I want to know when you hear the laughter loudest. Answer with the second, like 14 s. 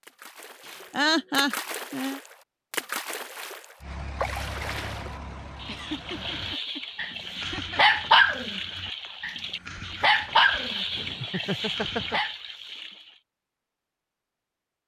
1 s.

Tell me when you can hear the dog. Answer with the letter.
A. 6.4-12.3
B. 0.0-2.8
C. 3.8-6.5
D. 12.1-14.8
A.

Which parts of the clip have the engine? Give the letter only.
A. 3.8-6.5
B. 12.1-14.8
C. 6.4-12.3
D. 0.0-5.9
A.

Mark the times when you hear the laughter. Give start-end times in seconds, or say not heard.
0.7-2.2, 5.7-8.0, 10.5-12.2.